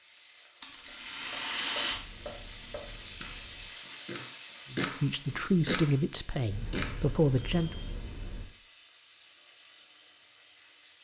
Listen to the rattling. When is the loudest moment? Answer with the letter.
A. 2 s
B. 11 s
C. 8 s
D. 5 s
A.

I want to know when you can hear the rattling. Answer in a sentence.
You can hear the rattling from 0.6 to 2.0 s and from 6.9 to 7.6 s.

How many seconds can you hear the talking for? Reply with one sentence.
You can hear the talking for 3 seconds altogether.